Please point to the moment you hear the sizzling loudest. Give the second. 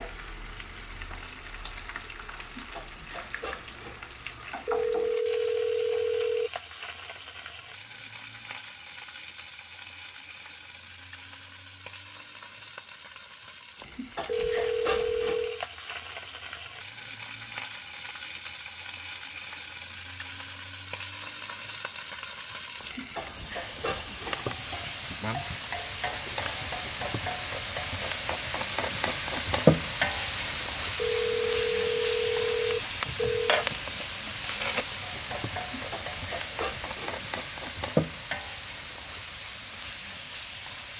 30 s.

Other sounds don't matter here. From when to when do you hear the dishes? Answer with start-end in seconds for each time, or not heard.
2.4-4.0, 13.8-15.4, 22.8-24.4, 35.6-37.2.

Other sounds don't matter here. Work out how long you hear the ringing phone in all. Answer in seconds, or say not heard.
6 s.